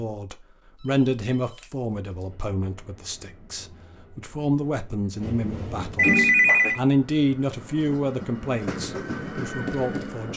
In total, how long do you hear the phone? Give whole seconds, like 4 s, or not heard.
2 s.